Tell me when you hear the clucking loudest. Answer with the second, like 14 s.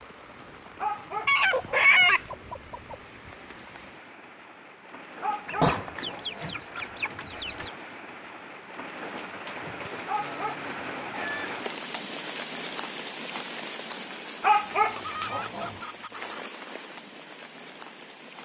2 s.